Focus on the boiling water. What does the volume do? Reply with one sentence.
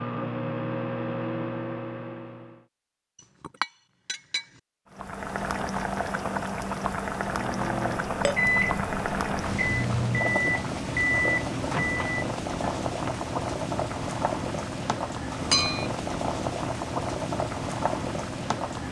The volume of the boiling water stays about the same.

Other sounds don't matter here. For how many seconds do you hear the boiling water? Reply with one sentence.
You can hear the boiling water for 14 seconds altogether.